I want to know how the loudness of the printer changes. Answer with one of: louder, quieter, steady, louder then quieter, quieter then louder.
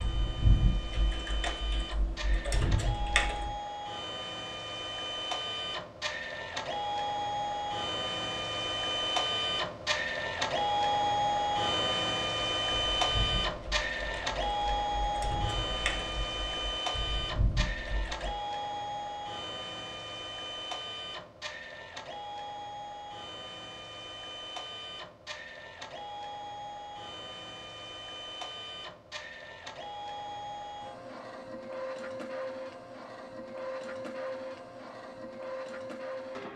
louder then quieter.